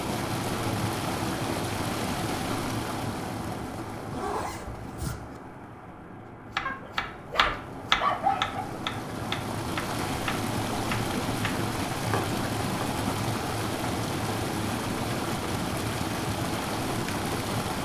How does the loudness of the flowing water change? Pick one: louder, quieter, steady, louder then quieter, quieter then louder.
quieter then louder.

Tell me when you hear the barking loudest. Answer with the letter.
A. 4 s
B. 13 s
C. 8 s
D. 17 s
C.